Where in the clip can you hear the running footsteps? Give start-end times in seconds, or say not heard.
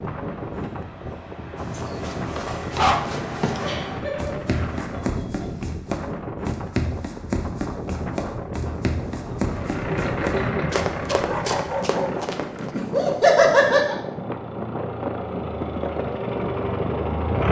1.6-12.7.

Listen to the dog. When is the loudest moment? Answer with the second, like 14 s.
3 s.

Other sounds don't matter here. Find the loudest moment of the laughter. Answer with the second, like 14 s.
13 s.